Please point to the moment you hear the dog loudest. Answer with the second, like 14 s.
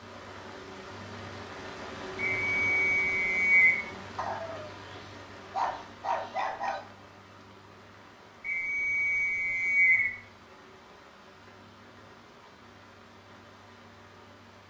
6 s.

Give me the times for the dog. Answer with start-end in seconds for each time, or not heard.
4.2-6.8.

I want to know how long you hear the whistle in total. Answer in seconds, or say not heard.
3 s.